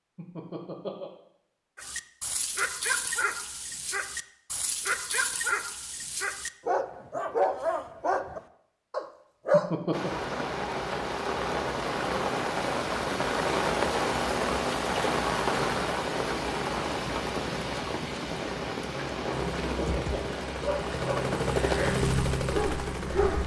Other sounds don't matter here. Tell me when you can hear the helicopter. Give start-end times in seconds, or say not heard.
19.3-23.4.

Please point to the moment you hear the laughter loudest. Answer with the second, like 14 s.
10 s.